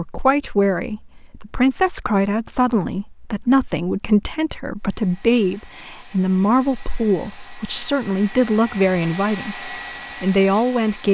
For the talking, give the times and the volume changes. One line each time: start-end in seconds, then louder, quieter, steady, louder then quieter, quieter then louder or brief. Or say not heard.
0.0-11.0 steady.